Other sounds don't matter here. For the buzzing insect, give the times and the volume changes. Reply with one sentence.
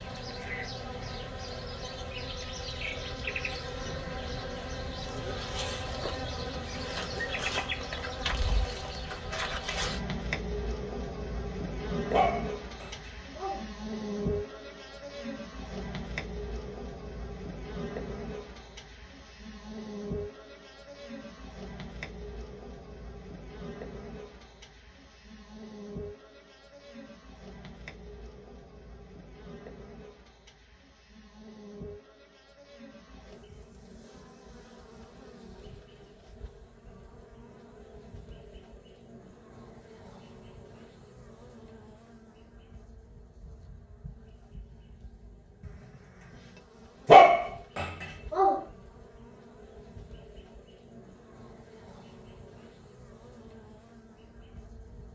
The buzzing insect can be heard from 0.0 to 55.0 s, getting quieter.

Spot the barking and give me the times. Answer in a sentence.
The barking can be heard from 12.1 to 13.7 s and from 47.0 to 48.6 s.